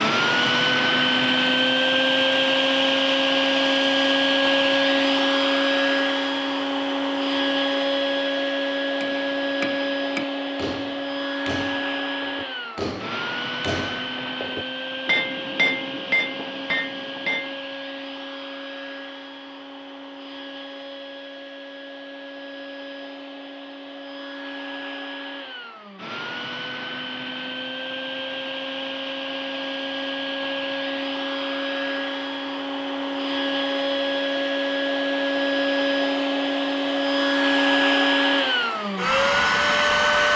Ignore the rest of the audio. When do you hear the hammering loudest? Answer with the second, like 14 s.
16 s.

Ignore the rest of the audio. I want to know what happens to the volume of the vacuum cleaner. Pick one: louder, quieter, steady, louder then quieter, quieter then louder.
quieter then louder.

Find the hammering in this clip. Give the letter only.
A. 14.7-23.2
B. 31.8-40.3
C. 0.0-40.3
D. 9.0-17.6
D.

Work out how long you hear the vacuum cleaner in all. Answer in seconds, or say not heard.
40 s.